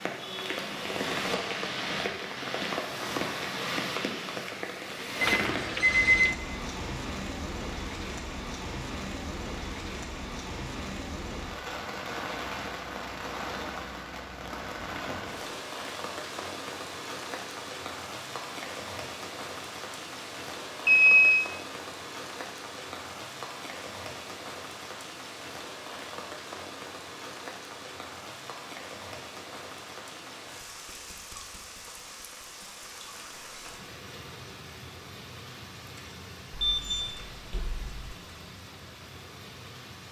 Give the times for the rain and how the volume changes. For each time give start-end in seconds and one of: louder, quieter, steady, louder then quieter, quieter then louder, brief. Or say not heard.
0.0-40.0 quieter.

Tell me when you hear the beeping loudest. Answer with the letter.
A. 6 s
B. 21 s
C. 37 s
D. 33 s
B.